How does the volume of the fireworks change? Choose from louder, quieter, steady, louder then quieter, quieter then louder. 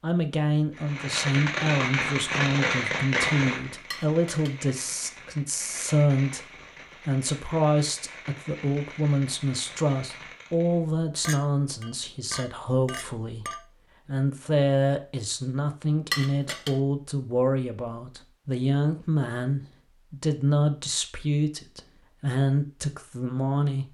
quieter.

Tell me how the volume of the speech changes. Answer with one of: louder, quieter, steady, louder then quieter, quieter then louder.
steady.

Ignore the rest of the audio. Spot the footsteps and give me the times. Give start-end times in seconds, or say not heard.
not heard.